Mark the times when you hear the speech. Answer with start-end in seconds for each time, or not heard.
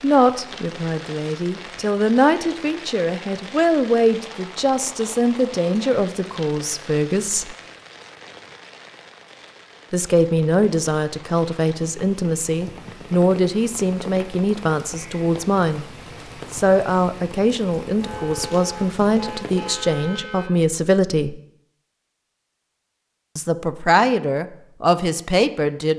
0.0-7.5, 9.9-15.8, 16.5-21.4, 23.4-25.9.